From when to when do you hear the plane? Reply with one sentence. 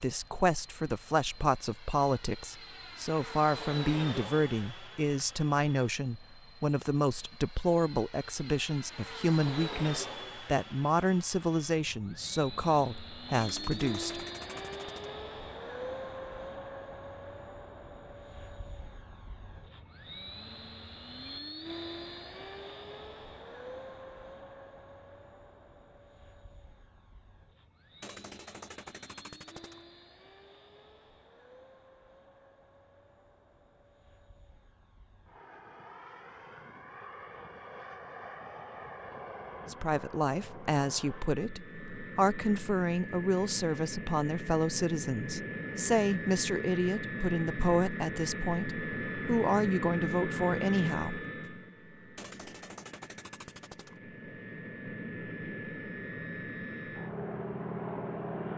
You can hear the plane from 0.0 to 58.5 s.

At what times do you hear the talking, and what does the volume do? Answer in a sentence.
You can hear the talking from 0.0 to 14.2 s, at a steady volume; and from 39.7 to 51.2 s, at a steady volume.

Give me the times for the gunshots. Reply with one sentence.
You can hear the gunshots from 13.3 to 15.2 s, from 28.0 to 29.9 s and from 52.1 to 54.0 s.